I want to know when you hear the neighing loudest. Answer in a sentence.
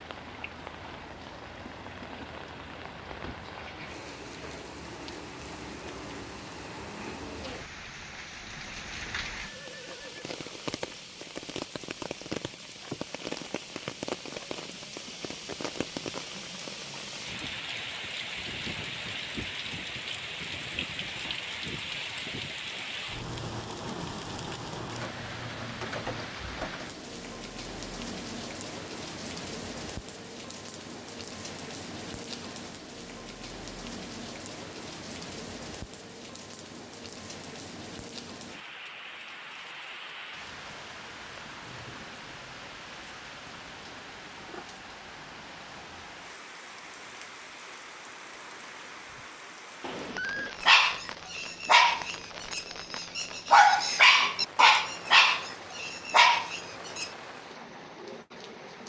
The volume of the neighing peaks at 50 seconds.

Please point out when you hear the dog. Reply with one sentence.
The dog can be heard from 50.6 to 57.1 s.